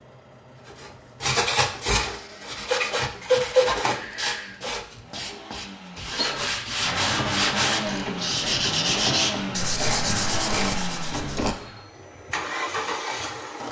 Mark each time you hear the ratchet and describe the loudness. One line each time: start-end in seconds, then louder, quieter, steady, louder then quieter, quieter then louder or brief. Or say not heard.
6.1-11.6 steady.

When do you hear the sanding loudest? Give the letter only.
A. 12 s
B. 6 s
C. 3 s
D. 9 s
C.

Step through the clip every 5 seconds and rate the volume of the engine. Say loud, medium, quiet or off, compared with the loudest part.
quiet, loud, loud.